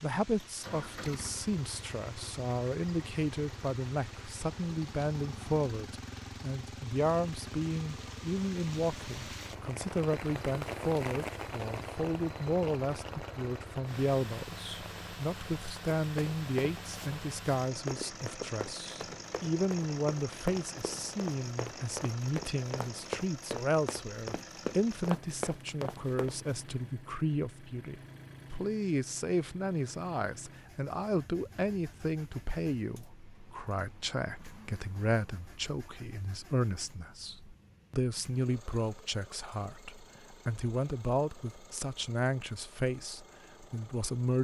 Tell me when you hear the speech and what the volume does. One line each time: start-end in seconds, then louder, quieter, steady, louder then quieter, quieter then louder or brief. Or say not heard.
0.0-44.4 steady.